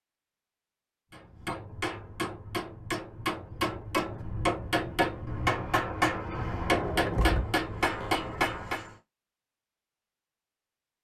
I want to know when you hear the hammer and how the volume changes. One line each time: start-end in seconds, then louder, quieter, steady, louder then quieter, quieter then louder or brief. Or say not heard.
1.1-8.9 louder.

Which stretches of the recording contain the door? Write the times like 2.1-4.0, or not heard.
6.7-8.2.